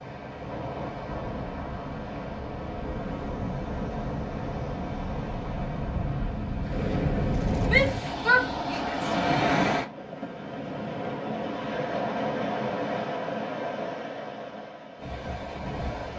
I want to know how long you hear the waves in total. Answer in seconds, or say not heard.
16 s.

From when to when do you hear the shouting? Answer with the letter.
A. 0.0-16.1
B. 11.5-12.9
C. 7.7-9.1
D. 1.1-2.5
C.